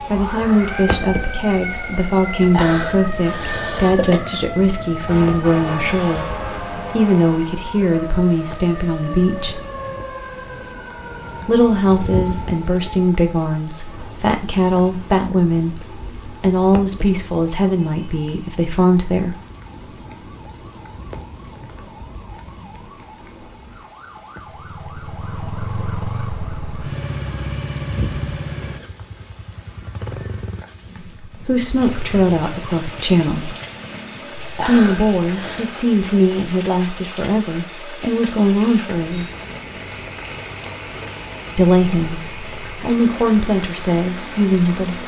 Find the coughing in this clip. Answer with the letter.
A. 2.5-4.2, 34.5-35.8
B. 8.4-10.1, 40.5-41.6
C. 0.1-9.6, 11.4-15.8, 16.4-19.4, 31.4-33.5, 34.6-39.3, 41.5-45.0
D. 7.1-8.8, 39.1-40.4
A.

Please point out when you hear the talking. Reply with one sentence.
The talking can be heard from 0.1 to 9.6 s, from 11.4 to 15.8 s, from 16.4 to 19.4 s, from 31.4 to 33.5 s, from 34.6 to 39.3 s and from 41.5 to 45.0 s.